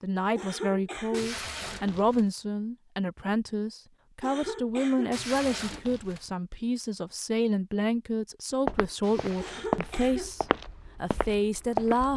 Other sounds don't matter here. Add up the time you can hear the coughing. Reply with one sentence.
You can hear the coughing for 4 seconds altogether.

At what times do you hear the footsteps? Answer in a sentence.
The footsteps can be heard from 8.7 to 12.1 s.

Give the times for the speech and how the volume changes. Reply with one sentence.
The speech can be heard from 0.0 to 12.1 s, at a steady volume.